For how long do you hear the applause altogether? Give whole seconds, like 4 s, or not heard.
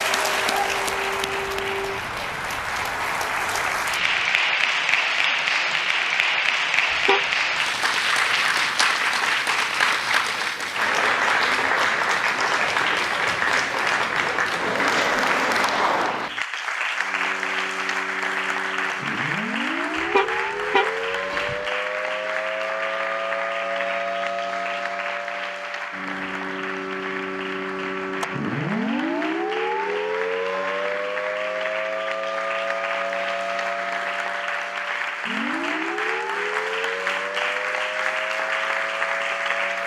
40 s.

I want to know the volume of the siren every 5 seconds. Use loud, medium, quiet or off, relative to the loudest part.
medium, off, off, medium, loud, loud, loud, loud.